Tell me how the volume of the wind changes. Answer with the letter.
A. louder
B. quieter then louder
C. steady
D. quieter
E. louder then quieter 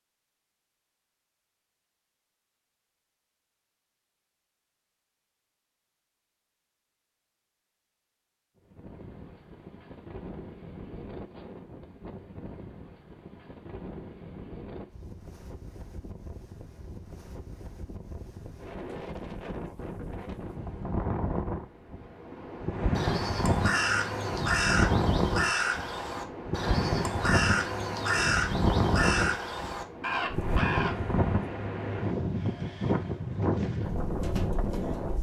A.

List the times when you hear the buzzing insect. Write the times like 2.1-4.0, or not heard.
not heard.